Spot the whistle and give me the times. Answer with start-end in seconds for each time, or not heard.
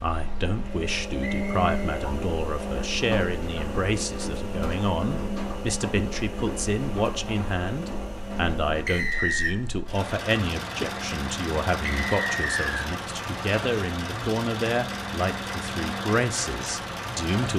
1.1-1.9, 8.8-9.6, 11.8-12.8.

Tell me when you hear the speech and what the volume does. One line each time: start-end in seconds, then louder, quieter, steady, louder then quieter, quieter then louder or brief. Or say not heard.
0.0-17.5 steady.